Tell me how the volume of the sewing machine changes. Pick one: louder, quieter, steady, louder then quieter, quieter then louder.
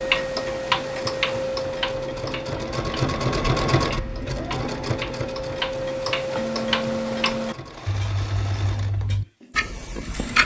louder then quieter.